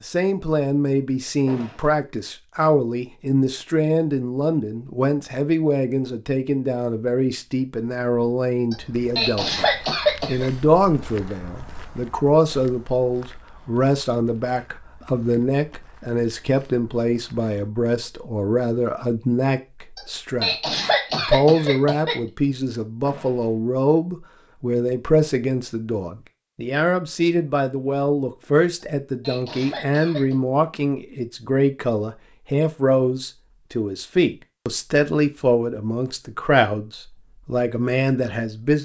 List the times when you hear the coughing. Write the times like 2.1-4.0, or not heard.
8.7-10.5, 19.9-22.1, 28.8-30.4.